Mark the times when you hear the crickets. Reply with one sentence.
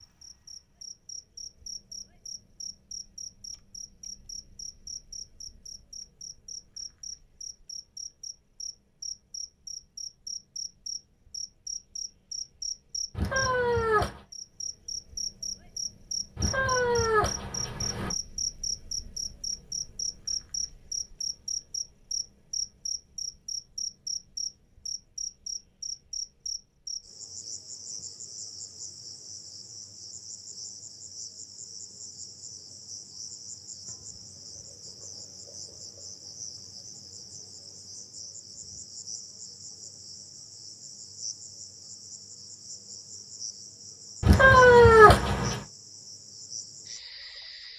You can hear the crickets from 0.0 to 47.7 s.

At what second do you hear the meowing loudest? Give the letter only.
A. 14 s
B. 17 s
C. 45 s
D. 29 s
C.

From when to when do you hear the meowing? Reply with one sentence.
The meowing can be heard from 13.1 to 14.2 s, from 16.4 to 18.1 s and from 44.2 to 45.6 s.